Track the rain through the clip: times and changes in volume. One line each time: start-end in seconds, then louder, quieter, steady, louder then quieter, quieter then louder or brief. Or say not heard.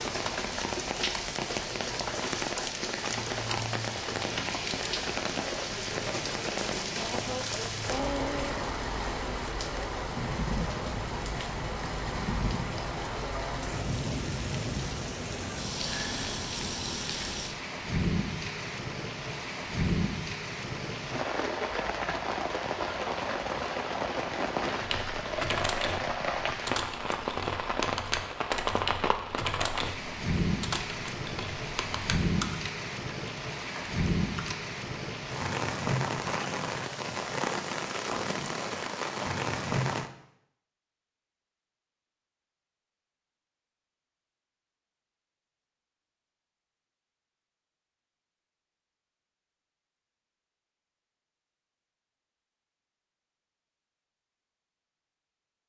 0.0-40.1 steady.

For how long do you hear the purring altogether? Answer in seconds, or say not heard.
not heard.